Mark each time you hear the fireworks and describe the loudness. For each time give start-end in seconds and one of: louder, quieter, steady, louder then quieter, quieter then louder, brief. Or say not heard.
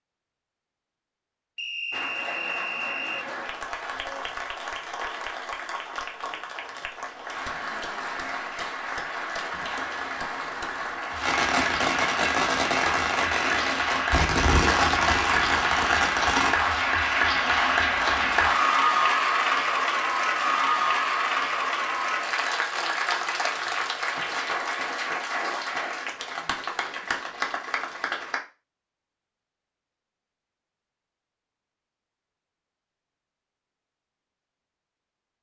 9.7-16.5 louder.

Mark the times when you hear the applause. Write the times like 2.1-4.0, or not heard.
1.9-28.4.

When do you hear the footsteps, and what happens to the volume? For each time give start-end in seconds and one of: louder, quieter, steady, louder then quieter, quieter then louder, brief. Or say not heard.
not heard.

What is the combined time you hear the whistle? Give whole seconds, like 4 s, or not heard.
2 s.